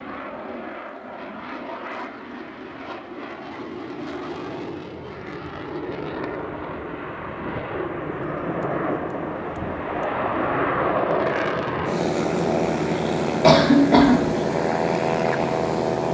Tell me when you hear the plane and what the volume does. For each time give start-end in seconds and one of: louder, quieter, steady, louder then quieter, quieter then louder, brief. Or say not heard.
0.0-16.1 louder.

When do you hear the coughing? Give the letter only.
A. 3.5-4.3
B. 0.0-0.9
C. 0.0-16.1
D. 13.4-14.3
D.